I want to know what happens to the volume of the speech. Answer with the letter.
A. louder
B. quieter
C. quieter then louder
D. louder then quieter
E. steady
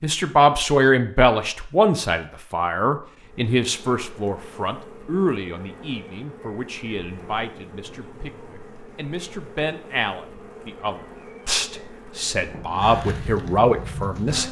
C.